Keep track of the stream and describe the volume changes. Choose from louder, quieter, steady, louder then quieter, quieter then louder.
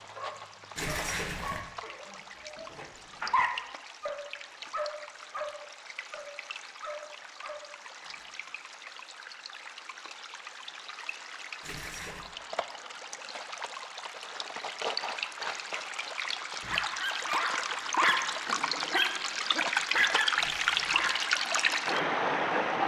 louder.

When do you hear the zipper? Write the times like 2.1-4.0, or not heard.
0.8-1.6, 11.6-12.3, 20.4-21.1.